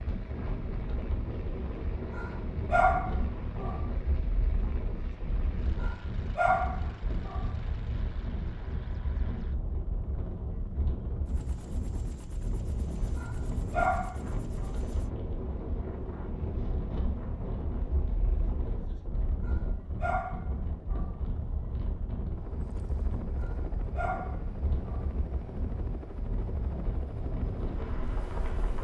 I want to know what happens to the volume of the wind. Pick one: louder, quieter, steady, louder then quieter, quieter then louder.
steady.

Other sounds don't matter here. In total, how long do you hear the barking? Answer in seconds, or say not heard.
8 s.